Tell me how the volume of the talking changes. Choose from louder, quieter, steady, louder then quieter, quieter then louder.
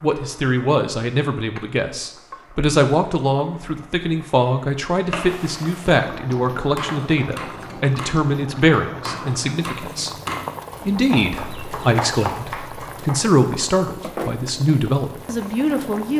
steady.